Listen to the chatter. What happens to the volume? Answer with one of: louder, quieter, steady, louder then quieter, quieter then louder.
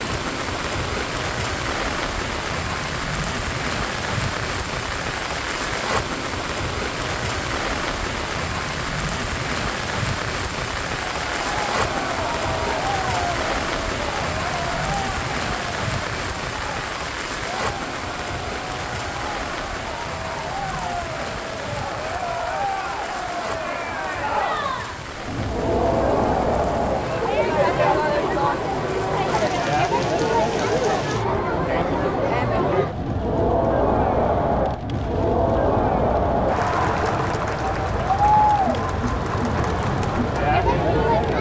louder.